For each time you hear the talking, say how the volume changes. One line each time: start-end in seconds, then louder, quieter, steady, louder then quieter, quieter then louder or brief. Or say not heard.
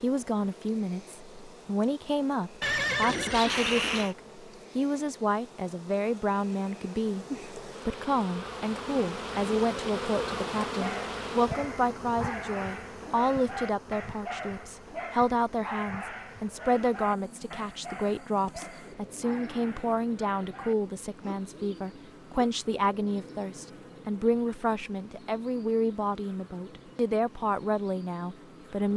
0.0-28.9 steady.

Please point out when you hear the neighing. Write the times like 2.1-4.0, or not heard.
2.6-4.2.